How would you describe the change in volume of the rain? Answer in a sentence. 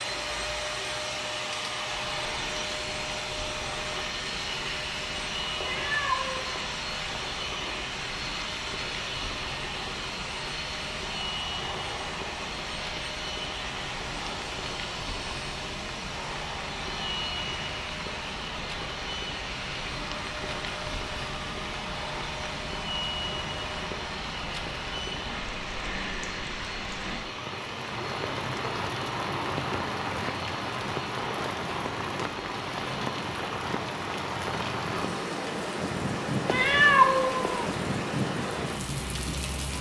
The volume of the rain goes up.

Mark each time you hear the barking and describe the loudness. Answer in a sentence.
You can't hear the barking here.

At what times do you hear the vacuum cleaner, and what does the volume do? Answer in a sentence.
The vacuum cleaner can be heard from 0.0 to 39.7 s, getting quieter.